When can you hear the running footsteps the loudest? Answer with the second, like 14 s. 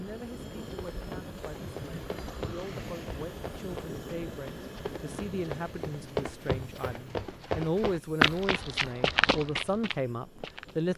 8 s.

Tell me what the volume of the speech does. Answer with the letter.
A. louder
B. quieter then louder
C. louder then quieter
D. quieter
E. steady
A.